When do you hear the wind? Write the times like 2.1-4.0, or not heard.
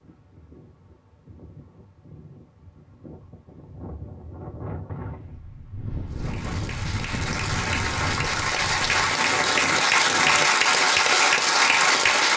0.0-10.5.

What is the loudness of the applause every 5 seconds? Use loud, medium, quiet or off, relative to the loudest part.
off, medium, loud.